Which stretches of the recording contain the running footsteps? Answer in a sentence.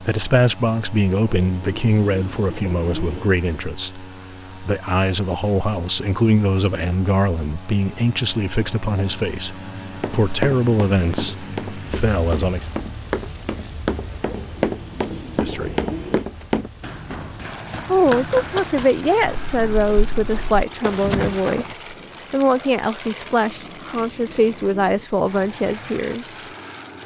You can hear the running footsteps from 10.0 to 21.8 s.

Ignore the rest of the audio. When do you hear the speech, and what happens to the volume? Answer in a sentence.
You can hear the speech from 0.0 to 12.7 s, at a steady volume; briefly from 15.3 to 15.8 s; and from 17.9 to 26.4 s, at a steady volume.